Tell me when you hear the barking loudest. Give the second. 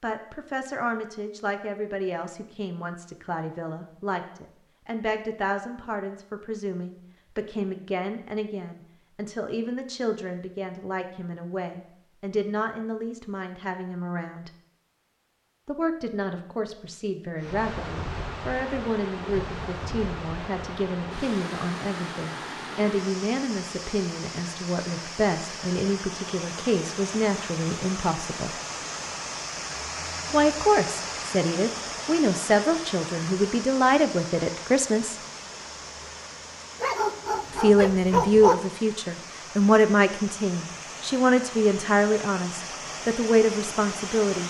38 s.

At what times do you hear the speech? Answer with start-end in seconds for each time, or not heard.
0.0-14.5, 15.7-28.5, 30.3-35.1, 37.5-44.4.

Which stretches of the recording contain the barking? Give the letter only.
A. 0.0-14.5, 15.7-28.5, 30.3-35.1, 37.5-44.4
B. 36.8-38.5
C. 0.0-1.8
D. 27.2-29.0
B.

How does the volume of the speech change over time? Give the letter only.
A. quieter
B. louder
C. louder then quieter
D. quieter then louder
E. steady
B.